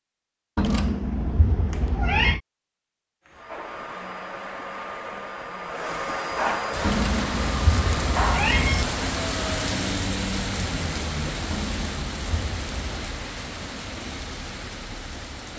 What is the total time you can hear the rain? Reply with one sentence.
You can hear the rain for 9 seconds altogether.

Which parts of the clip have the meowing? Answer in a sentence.
The meowing can be heard from 0.6 to 2.4 s, from 6.8 to 8.8 s and from 11.5 to 13.1 s.